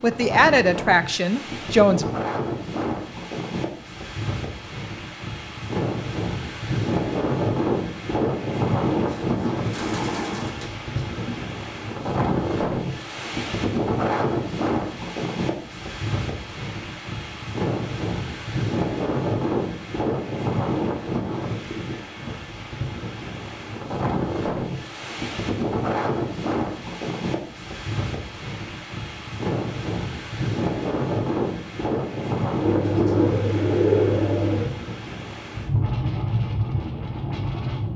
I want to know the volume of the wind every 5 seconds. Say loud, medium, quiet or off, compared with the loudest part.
medium, loud, loud, loud, loud, loud, loud, loud.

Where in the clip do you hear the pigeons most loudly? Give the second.
34 s.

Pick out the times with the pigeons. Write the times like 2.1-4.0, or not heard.
9.1-11.4, 32.6-34.6.